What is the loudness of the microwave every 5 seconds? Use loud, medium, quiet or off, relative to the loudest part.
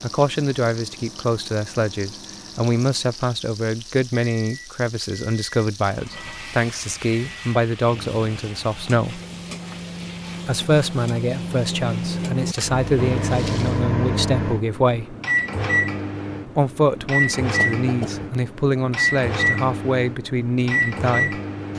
quiet, quiet, loud, loud, loud.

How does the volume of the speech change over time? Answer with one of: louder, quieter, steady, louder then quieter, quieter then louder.
steady.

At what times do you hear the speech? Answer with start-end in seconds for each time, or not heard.
0.0-9.2, 10.4-15.2, 16.4-21.4.